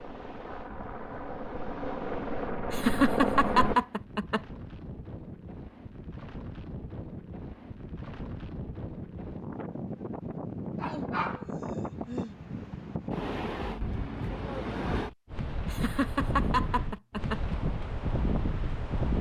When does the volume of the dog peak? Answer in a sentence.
The volume of the dog peaks at 11 seconds.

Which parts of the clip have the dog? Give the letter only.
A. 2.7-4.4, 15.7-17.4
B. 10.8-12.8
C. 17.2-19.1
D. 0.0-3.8
B.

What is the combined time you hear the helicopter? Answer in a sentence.
The helicopter can be heard for 4 seconds in total.